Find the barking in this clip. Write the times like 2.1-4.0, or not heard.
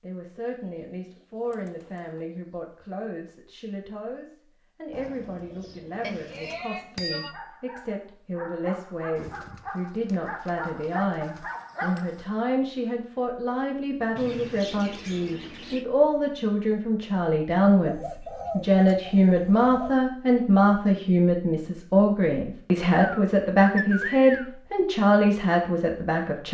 7.2-12.2.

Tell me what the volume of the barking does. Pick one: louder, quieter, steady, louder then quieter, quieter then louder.
louder.